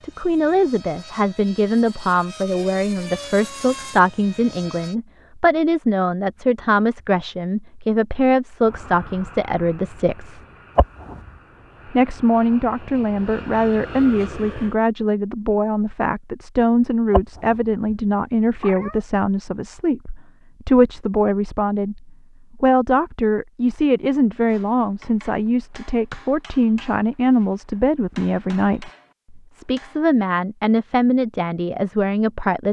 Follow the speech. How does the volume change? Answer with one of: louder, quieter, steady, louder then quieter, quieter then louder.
steady.